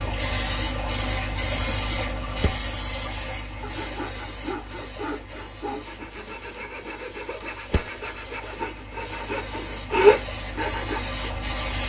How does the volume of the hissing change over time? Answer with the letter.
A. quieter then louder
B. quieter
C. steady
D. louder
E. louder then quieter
A.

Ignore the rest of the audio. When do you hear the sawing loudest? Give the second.
10 s.